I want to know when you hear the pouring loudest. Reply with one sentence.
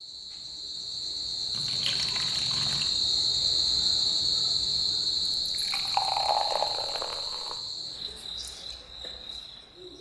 The volume of the pouring peaks at 6 seconds.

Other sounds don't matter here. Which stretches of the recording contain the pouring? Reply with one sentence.
You can hear the pouring from 1.5 to 3.0 s and from 5.5 to 7.6 s.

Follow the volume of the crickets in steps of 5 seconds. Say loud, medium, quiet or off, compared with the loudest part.
loud, medium.